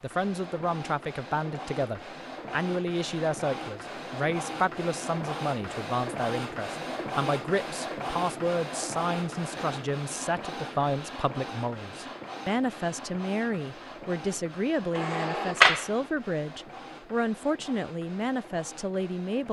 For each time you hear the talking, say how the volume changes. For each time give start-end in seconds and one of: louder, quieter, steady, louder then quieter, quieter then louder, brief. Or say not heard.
0.0-19.4 steady.